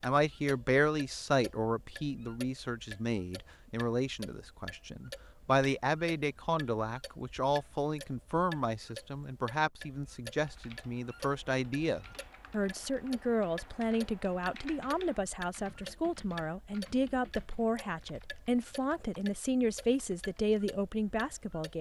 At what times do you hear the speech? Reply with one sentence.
You can hear the speech from 0.0 to 21.7 s.